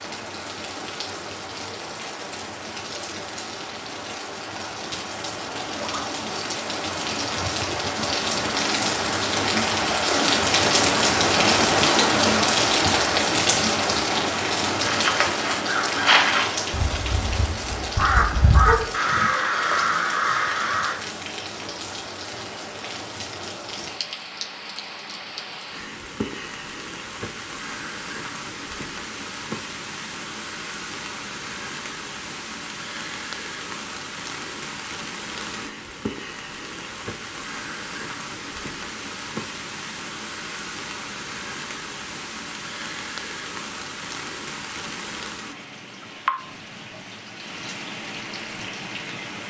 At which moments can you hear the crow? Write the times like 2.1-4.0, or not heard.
14.8-20.9.